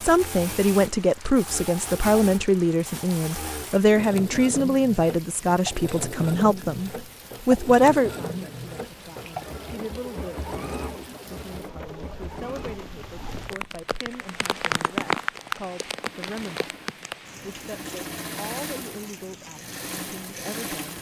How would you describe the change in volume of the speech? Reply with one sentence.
The loudness of the speech goes down.